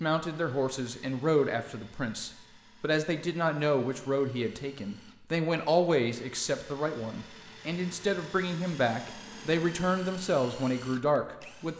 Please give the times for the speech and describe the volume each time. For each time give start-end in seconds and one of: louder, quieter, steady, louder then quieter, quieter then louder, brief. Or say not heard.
0.0-11.7 steady.